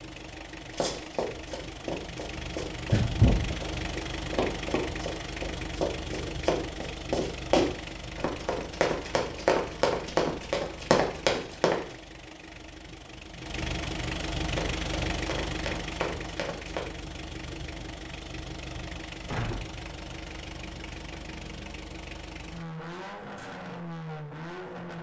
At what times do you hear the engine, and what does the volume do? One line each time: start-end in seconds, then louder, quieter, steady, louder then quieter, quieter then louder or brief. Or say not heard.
0.0-24.9 steady.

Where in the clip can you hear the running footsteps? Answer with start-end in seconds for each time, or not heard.
0.7-11.8, 14.5-16.8.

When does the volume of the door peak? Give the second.
3 s.